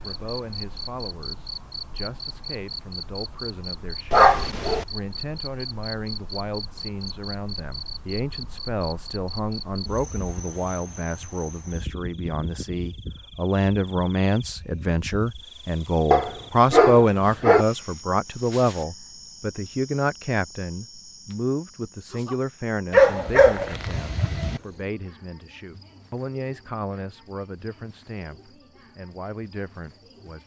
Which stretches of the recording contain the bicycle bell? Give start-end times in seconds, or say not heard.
not heard.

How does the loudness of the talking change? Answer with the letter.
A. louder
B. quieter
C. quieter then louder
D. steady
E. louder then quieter
E.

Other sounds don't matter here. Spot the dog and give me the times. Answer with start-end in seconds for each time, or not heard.
4.1-4.8, 16.1-17.6, 22.9-24.6.